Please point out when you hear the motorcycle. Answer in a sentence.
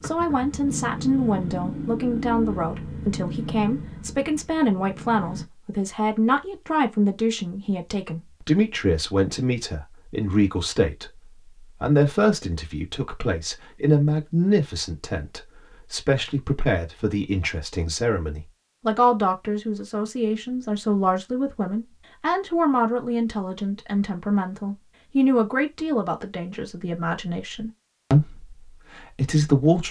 The motorcycle can be heard from 0.0 to 5.5 s.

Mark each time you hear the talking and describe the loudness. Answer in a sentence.
You can hear the talking from 0.0 to 29.8 s, at a steady volume.